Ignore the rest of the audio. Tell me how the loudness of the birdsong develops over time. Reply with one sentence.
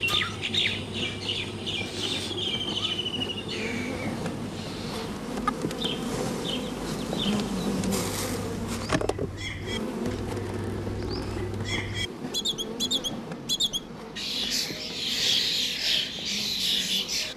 The loudness of the birdsong goes down, then up.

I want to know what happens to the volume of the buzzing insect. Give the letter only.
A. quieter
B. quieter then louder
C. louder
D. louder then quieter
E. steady
D.